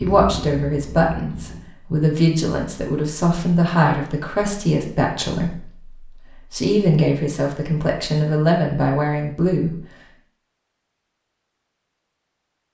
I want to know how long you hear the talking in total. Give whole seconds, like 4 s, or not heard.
10 s.